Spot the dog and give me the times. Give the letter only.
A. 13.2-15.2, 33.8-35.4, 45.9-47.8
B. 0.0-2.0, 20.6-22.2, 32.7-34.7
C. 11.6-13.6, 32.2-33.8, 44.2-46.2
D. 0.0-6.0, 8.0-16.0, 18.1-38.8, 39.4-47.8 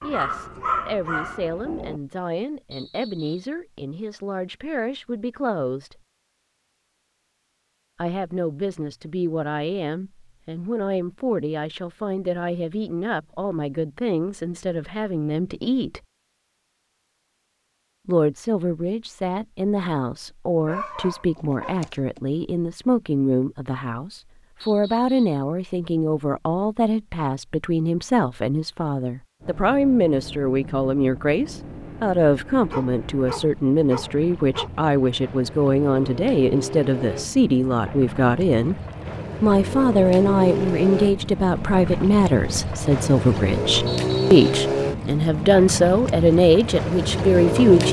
B.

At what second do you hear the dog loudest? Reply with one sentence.
The volume of the dog peaks at 1 second.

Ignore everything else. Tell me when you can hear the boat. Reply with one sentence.
You can hear the boat from 29.4 to 47.8 s.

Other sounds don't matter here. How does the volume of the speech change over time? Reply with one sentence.
The volume of the speech goes up.